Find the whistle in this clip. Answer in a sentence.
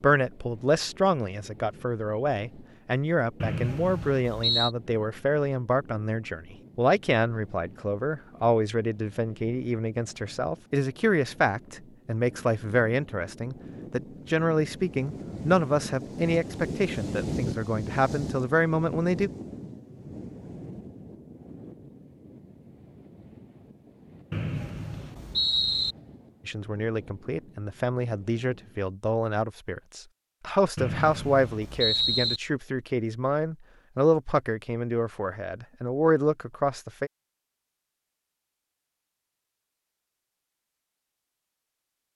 You can hear the whistle from 3.4 to 4.7 s, from 24.3 to 25.9 s and from 30.8 to 32.4 s.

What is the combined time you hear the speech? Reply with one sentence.
You can hear the speech for 30 seconds altogether.